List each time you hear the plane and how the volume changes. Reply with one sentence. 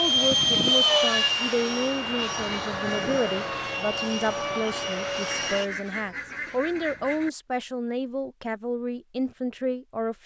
You can hear the plane from 0.0 to 5.7 s, getting quieter.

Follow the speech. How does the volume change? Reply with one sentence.
The loudness of the speech stays about the same.